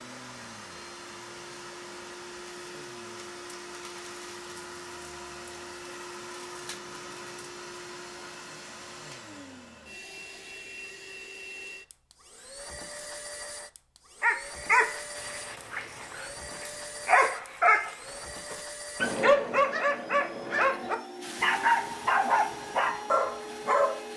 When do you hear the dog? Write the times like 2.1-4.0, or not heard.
14.2-24.0.